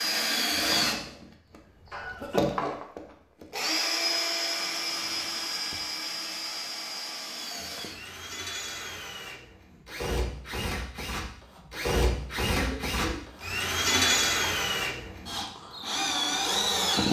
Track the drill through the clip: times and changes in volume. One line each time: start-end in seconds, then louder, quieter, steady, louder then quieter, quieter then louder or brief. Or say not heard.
0.0-17.0 quieter then louder.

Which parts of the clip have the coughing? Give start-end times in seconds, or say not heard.
1.9-2.6, 12.5-14.3.